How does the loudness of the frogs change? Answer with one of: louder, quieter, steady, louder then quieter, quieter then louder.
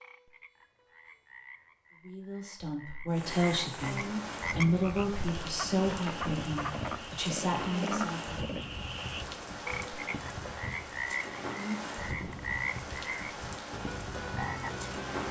louder.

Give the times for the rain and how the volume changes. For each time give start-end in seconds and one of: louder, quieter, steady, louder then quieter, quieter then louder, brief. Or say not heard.
3.1-15.2 steady.